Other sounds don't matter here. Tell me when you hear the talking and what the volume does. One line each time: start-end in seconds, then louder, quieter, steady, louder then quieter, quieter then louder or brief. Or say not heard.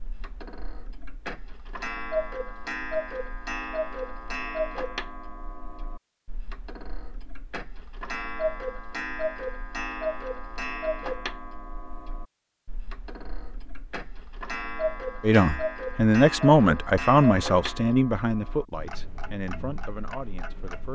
15.2-20.8 quieter.